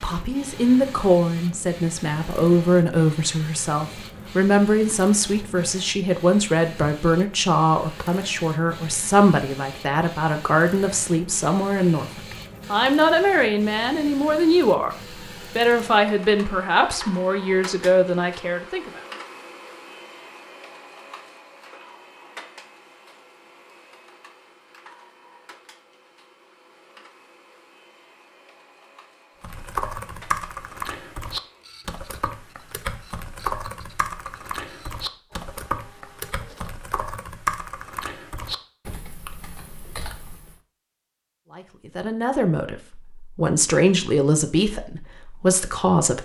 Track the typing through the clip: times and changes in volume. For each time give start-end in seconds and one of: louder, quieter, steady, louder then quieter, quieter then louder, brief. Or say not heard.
29.4-40.5 quieter.